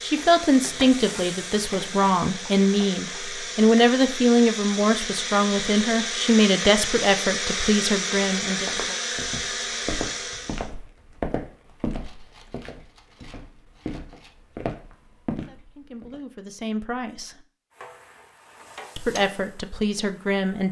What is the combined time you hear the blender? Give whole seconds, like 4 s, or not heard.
11 s.